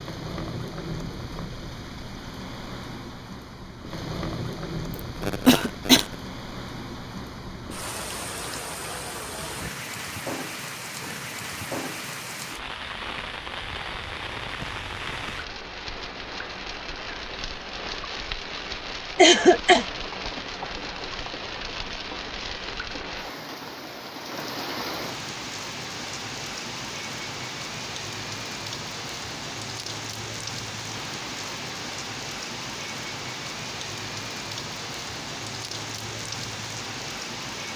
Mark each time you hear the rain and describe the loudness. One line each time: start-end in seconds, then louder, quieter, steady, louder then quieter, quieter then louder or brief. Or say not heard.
0.0-37.7 steady.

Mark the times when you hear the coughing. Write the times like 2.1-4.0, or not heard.
5.2-6.0, 19.1-19.9.